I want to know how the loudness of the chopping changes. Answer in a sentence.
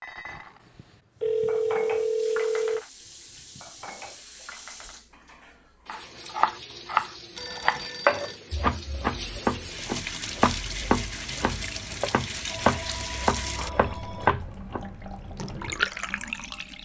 The volume of the chopping goes down.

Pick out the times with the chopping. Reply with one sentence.
The chopping can be heard from 5.8 to 15.8 s.